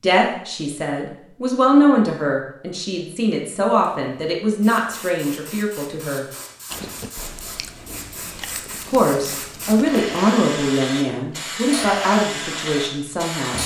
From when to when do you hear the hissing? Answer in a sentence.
You can hear the hissing from 3.7 to 13.6 s.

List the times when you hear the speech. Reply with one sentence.
The speech can be heard from 0.0 to 6.2 s and from 8.7 to 13.6 s.